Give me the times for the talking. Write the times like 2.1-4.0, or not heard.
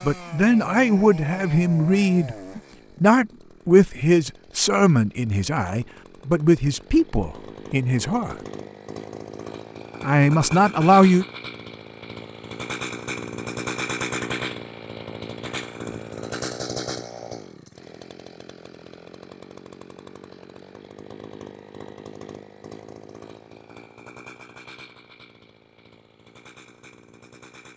0.0-8.3, 10.0-11.2.